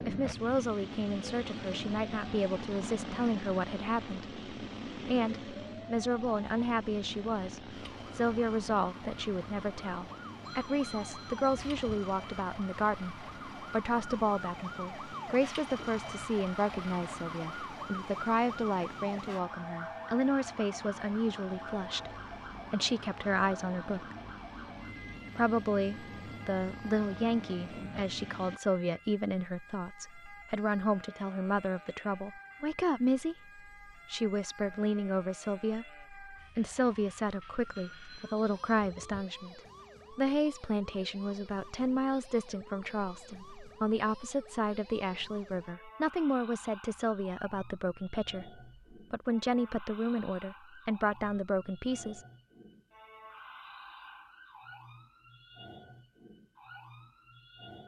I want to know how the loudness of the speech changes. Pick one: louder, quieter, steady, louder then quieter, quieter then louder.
steady.